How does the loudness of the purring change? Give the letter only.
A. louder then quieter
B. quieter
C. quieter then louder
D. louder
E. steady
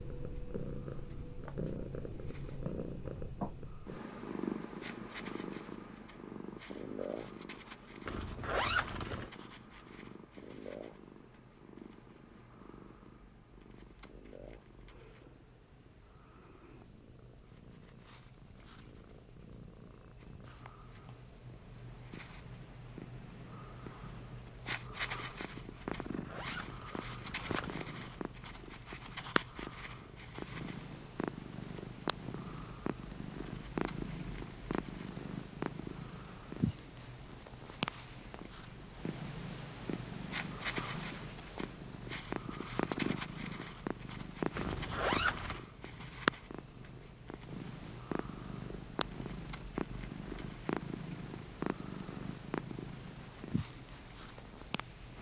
C.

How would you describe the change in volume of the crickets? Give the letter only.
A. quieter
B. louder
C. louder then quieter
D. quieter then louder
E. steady
B.